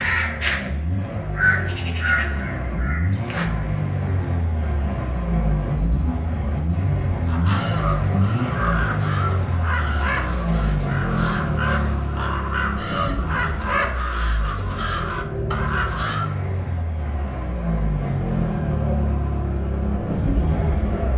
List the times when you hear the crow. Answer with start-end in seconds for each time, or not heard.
0.0-3.6, 7.2-16.3.